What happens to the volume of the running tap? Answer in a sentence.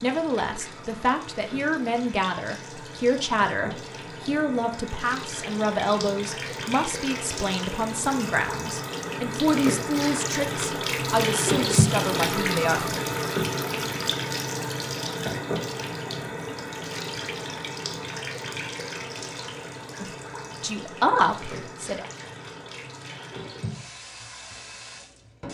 The volume of the running tap goes up, then down.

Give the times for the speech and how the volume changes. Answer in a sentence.
You can hear the speech from 0.0 to 12.8 s, at a steady volume; and briefly from 20.0 to 22.1 s.